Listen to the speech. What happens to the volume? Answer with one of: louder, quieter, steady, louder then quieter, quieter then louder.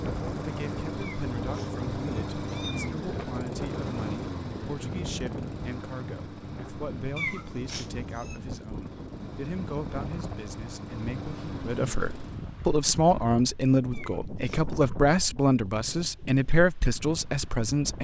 louder.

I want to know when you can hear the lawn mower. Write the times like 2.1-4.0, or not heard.
0.0-12.4.